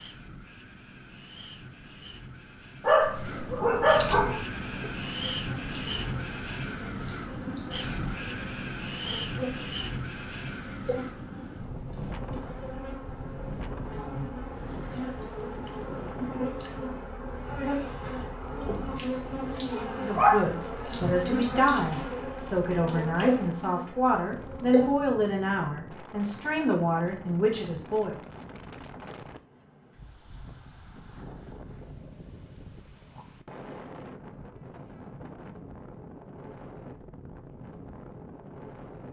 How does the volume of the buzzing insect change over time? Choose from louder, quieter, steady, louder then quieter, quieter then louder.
louder.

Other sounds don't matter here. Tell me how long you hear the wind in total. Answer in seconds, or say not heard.
39 s.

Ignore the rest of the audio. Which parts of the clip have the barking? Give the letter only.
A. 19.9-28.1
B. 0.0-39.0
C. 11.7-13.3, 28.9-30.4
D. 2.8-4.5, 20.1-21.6
D.